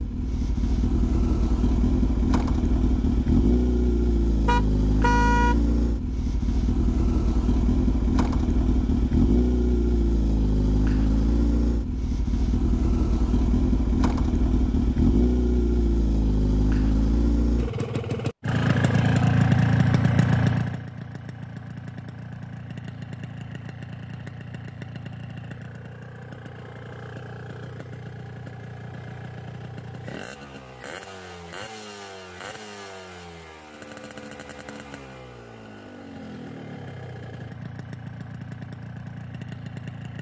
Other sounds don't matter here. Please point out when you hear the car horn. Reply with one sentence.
The car horn can be heard from 4.5 to 5.5 s.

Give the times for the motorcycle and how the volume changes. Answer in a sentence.
You can hear the motorcycle from 0.0 to 40.1 s, getting quieter.